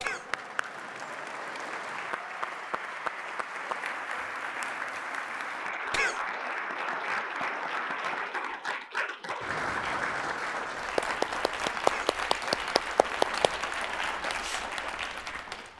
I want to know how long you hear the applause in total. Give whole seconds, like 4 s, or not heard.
16 s.